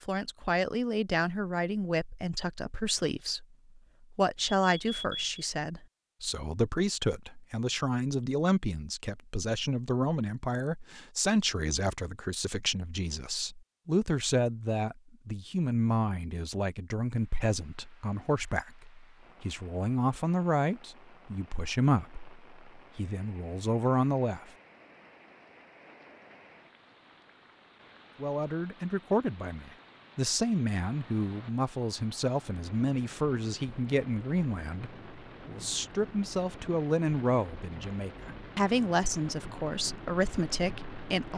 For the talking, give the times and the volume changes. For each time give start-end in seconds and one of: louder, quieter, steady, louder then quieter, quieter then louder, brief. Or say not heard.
0.0-24.4 steady
28.2-41.3 steady.